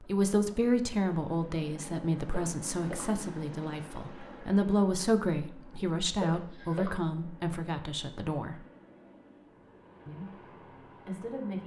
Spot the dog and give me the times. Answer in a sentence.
The dog can't be heard in this clip.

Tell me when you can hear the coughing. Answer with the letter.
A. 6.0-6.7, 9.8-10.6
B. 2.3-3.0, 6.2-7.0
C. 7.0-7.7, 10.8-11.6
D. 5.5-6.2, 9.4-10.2
B.